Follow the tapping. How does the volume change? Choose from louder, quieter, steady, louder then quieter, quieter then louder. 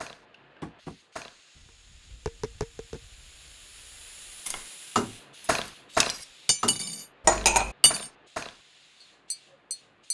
louder then quieter.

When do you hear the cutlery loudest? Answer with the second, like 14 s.
7 s.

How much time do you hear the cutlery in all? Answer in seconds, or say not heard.
3 s.